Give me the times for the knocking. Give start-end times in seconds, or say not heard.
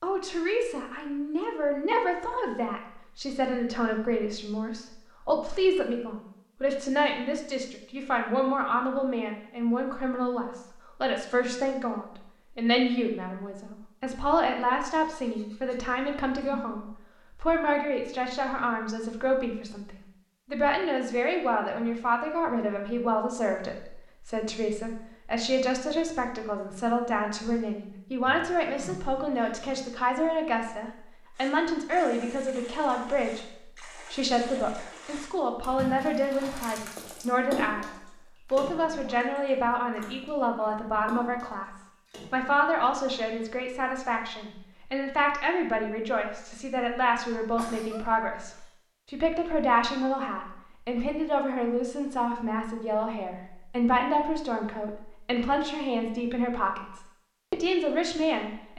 not heard.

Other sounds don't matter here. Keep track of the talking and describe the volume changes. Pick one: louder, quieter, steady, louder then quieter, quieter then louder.
steady.